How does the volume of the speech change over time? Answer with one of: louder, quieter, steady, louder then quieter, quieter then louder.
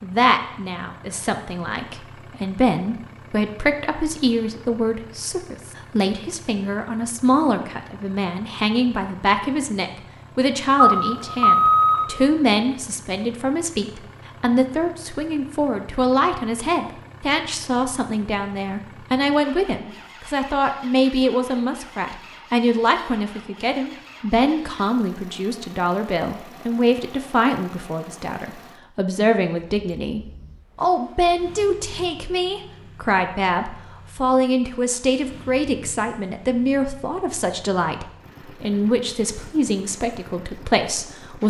steady.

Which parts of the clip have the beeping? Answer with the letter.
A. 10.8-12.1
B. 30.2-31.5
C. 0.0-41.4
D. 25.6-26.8
A.